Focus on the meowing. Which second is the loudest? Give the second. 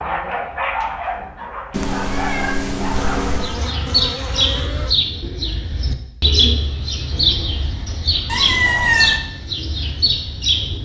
9 s.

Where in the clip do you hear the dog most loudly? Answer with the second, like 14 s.
1 s.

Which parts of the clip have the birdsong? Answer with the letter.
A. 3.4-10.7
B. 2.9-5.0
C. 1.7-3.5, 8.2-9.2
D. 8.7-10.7
A.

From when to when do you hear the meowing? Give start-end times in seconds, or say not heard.
1.7-3.5, 8.2-9.2.